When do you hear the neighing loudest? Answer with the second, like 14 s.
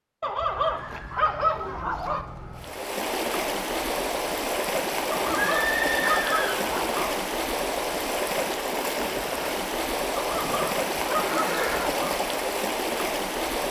6 s.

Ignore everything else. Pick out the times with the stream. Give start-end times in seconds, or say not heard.
2.5-13.6.